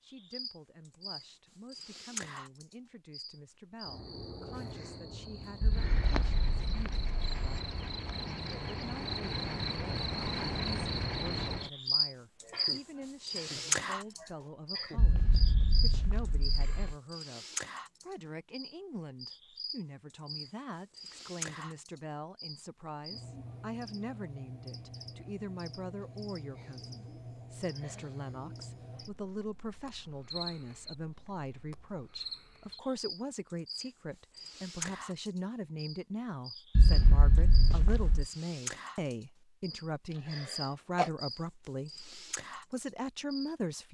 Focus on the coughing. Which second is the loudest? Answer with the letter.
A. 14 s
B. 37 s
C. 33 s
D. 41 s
D.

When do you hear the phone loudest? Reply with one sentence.
The volume of the phone peaks at 37 seconds.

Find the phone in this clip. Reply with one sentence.
The phone can be heard from 5.6 to 7.6 s, from 14.9 to 16.9 s and from 36.8 to 38.2 s.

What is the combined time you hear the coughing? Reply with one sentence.
You can hear the coughing for 4 seconds altogether.